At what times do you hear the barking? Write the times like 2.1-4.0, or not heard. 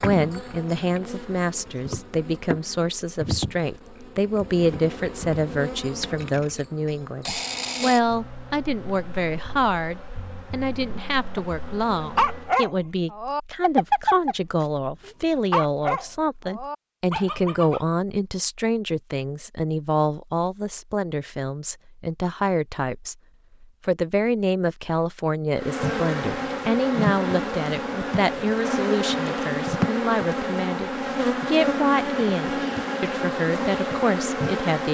12.2-14.3, 15.1-17.9.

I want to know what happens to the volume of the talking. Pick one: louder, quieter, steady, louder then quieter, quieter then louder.
steady.